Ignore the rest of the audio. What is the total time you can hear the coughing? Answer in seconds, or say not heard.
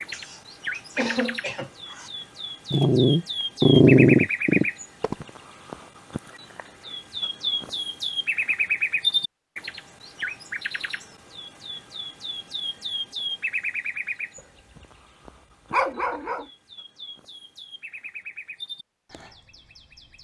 2 s.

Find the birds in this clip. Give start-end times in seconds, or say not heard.
0.0-20.2.